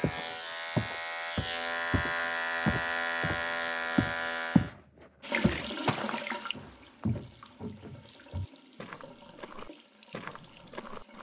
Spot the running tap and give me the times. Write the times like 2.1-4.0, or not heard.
5.2-11.1.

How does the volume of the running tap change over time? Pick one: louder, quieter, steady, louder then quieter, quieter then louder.
quieter.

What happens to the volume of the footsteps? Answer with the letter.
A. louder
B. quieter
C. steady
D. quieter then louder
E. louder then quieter
B.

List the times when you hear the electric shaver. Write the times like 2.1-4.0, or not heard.
0.0-4.8.